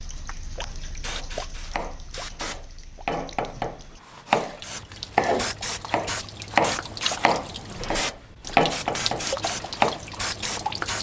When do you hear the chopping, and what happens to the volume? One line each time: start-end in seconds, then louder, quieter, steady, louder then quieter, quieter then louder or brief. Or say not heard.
1.1-10.0 louder.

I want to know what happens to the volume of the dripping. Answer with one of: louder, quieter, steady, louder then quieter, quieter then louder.
quieter then louder.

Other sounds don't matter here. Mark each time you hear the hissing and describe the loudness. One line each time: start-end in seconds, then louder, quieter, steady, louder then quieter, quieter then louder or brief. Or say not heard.
0.1-2.6 brief
4.6-10.9 steady.